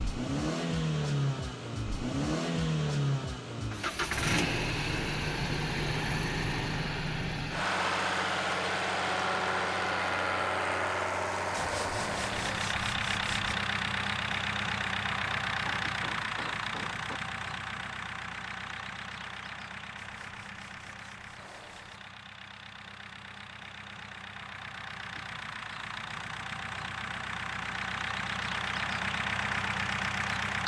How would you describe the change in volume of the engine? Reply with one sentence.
The loudness of the engine goes down, then up.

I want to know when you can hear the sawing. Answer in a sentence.
The sawing can be heard from 11.5 to 13.6 s and from 19.9 to 21.8 s.